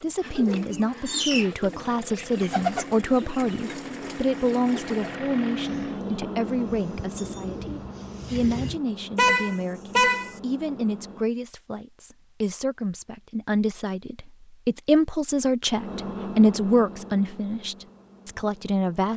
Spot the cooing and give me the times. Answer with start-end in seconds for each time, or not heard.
0.2-8.8.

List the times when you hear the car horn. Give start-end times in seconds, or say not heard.
9.2-10.4.